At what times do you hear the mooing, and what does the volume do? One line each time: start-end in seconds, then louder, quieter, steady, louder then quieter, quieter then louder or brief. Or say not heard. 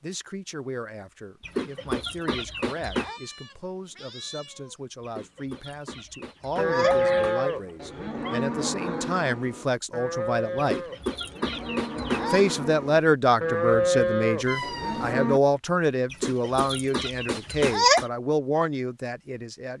6.5-15.4 quieter then louder.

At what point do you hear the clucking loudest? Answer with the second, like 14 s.
18 s.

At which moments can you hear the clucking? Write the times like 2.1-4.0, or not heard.
1.4-3.2, 5.0-7.5, 10.6-12.4, 16.1-18.1.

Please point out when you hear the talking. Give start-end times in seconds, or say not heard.
0.0-10.8, 12.3-19.7.